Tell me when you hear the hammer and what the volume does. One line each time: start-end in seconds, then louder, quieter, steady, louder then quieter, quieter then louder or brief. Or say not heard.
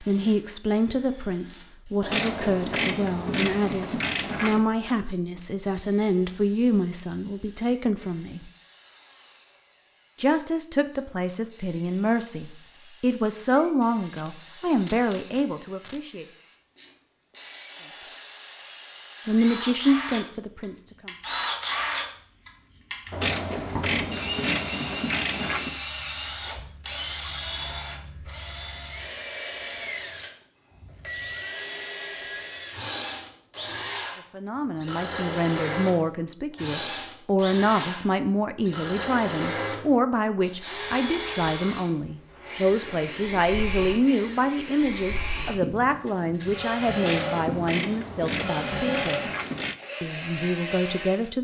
not heard.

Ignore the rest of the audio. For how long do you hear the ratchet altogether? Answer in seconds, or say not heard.
8 s.